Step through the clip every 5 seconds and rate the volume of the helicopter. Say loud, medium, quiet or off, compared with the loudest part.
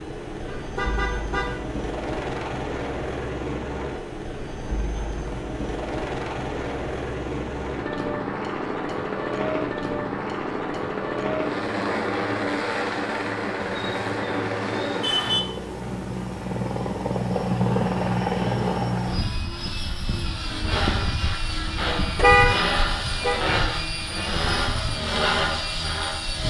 medium, loud, loud, loud, loud, loud.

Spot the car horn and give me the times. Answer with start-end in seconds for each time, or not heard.
0.5-1.6, 13.7-15.4, 22.1-23.4.